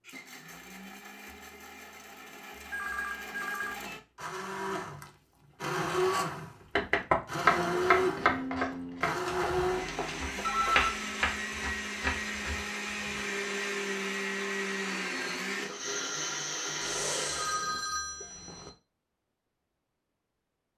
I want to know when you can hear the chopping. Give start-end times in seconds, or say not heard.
6.8-13.3.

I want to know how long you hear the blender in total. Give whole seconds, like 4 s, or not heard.
18 s.